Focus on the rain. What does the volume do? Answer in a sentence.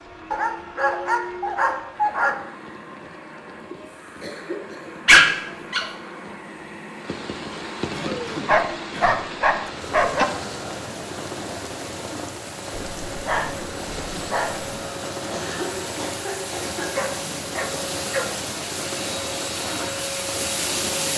The loudness of the rain goes up.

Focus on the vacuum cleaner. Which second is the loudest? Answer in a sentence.
The volume of the vacuum cleaner peaks at 21 seconds.